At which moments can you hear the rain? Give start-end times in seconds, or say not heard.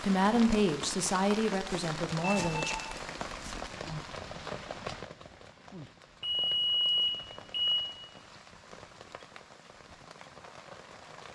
0.0-11.2.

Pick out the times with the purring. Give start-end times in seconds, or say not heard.
not heard.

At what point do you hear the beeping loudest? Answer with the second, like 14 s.
7 s.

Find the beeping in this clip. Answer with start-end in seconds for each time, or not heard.
2.3-3.0, 6.2-7.8.